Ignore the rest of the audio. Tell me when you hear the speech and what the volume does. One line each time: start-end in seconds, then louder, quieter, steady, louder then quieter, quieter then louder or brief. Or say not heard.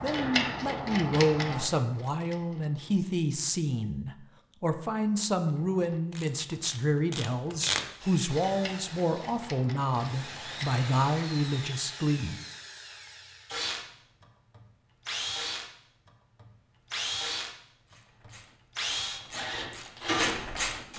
0.0-12.3 steady.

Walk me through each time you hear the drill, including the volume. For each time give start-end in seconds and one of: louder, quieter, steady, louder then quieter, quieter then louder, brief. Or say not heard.
8.0-20.9 louder.